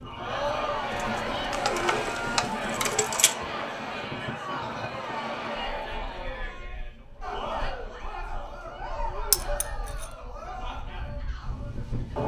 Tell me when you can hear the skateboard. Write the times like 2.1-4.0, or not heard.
not heard.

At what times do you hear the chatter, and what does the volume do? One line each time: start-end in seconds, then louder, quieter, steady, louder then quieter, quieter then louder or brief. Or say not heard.
0.1-12.2 quieter.